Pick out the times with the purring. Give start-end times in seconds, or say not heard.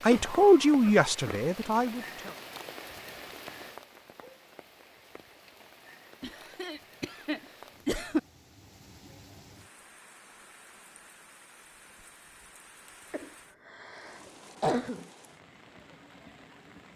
not heard.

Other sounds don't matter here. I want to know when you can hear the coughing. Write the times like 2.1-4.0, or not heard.
0.1-1.4, 6.2-8.2, 13.1-15.1.